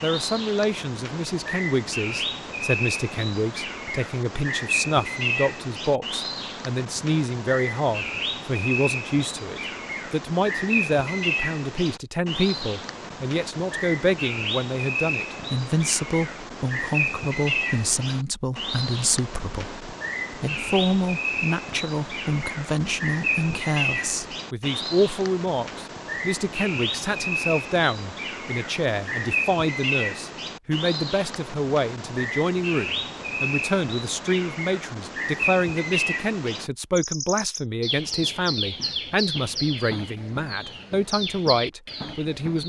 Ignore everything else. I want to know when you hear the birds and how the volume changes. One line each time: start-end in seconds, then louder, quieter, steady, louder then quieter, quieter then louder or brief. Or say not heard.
0.0-42.6 steady.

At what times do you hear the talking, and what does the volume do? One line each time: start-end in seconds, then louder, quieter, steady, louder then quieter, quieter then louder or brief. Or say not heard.
0.0-42.6 steady.